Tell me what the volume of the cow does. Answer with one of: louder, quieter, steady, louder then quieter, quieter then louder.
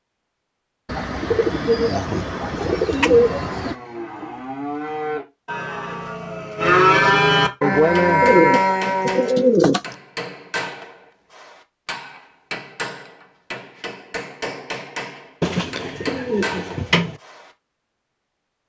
louder.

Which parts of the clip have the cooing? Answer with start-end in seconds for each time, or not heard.
0.8-3.8, 8.2-9.9, 15.4-17.1.